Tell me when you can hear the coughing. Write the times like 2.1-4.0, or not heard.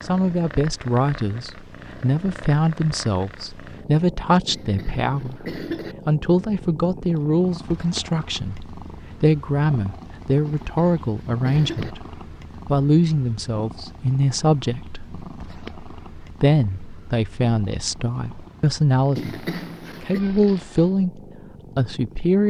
4.5-6.0, 10.4-11.9, 19.1-20.2.